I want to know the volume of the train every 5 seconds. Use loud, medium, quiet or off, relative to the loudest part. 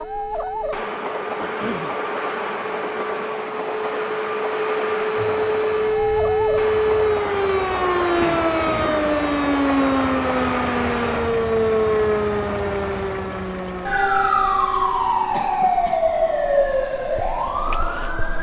loud, loud, loud, quiet.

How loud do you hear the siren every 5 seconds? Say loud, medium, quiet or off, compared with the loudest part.
medium, loud, loud, loud.